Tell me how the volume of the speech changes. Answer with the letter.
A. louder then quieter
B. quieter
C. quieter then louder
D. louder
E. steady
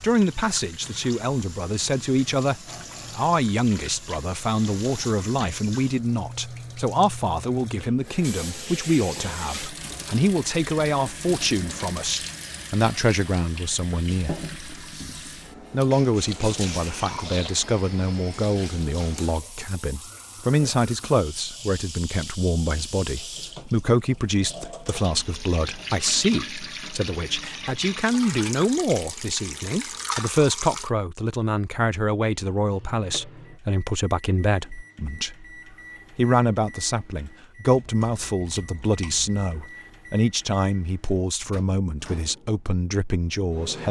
E.